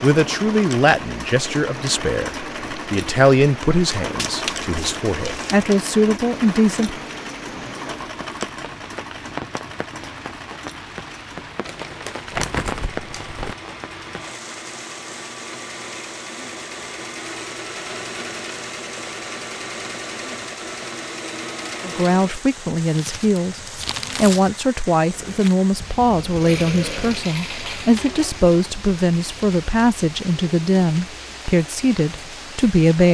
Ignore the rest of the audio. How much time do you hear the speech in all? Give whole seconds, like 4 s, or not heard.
18 s.